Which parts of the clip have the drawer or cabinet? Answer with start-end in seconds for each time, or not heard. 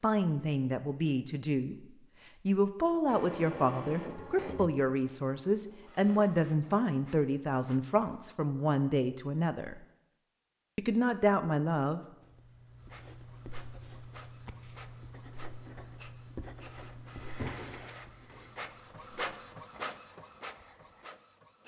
17.2-18.6.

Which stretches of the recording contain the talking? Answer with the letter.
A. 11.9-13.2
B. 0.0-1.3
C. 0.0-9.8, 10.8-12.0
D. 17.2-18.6
C.